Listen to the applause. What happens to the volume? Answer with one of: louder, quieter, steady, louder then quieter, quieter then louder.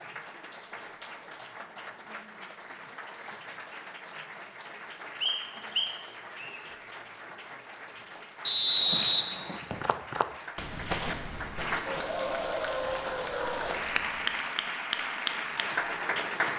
louder.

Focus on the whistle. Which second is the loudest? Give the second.
9 s.